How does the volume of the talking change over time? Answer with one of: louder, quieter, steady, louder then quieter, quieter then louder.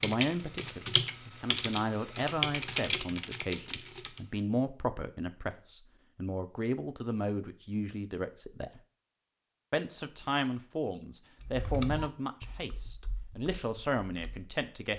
steady.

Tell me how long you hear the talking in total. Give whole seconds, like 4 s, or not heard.
14 s.